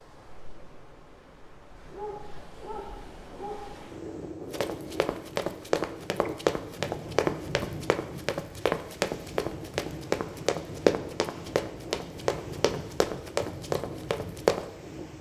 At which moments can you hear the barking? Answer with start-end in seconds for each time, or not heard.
1.8-3.6.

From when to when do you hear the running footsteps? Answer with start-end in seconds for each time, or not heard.
4.5-14.7.